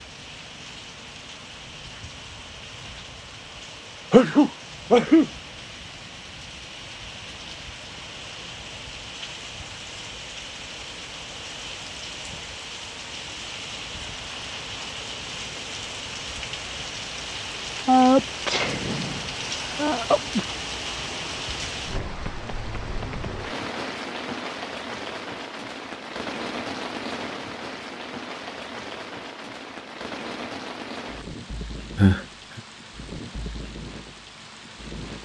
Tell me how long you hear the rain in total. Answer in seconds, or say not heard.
35 s.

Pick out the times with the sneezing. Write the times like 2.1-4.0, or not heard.
4.1-5.3, 17.9-20.6, 31.9-32.6.